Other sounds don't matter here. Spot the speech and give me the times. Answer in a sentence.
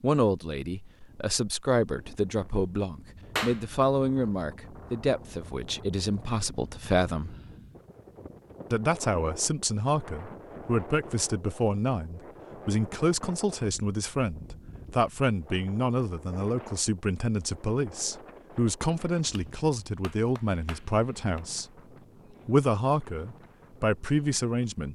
The speech can be heard from 0.0 to 7.3 s, from 8.7 to 21.6 s and from 22.4 to 24.9 s.